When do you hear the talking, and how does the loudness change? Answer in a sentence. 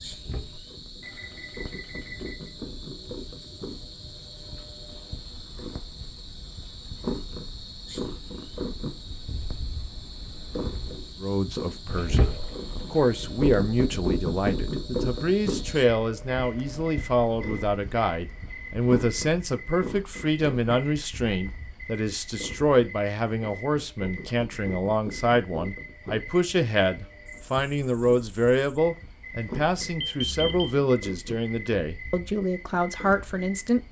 You can hear the talking from 11.2 to 33.8 s, at a steady volume.